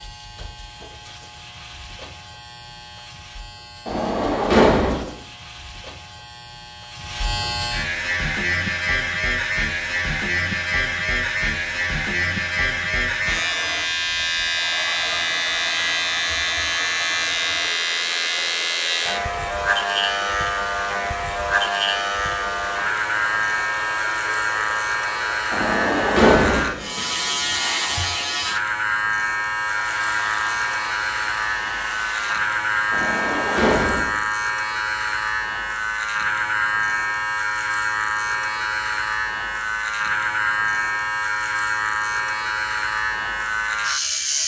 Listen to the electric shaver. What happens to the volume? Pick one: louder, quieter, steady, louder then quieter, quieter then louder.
louder.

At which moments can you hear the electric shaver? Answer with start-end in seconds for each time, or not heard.
0.0-44.4.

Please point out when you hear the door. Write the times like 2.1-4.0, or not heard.
3.9-5.0, 25.5-26.7, 32.9-34.1.